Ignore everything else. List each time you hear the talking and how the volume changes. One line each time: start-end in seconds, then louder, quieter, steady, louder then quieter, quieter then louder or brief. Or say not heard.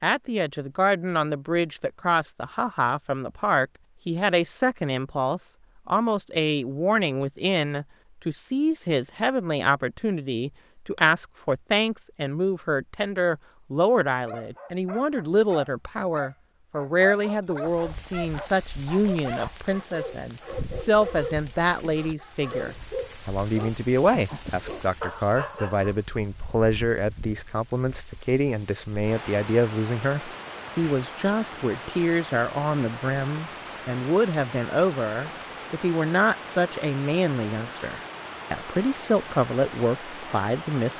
0.0-40.9 steady.